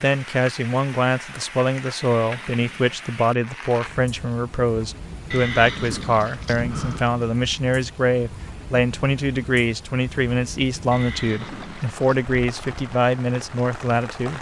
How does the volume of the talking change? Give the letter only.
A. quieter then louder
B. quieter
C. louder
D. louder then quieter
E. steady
E.